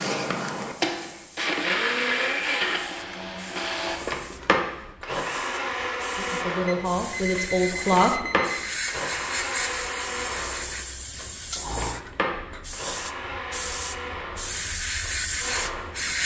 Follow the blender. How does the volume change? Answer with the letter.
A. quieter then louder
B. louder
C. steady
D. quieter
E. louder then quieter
D.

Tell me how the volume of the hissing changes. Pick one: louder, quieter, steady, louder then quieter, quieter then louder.
louder.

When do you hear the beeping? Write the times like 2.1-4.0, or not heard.
6.7-8.7.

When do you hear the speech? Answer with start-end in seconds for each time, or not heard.
6.2-8.3.